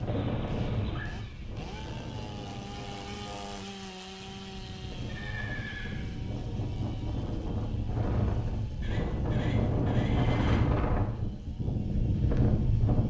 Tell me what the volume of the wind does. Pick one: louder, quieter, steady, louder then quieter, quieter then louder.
quieter then louder.